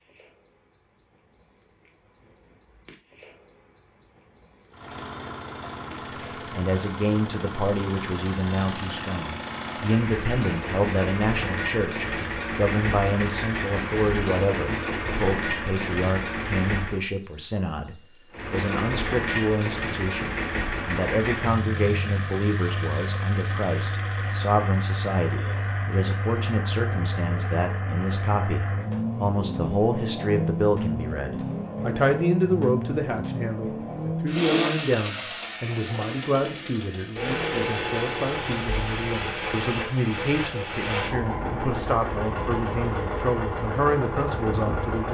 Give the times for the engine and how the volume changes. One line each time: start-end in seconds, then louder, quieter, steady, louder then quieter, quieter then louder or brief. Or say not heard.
4.7-17.0 louder
18.3-45.1 steady.